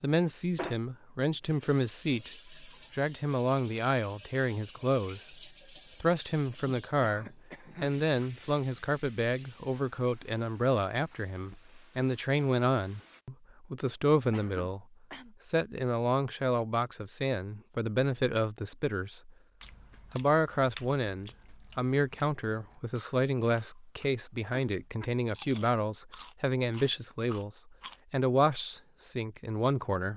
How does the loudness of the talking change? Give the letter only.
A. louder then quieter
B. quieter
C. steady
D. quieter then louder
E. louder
C.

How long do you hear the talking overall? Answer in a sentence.
The talking can be heard for 28 seconds in total.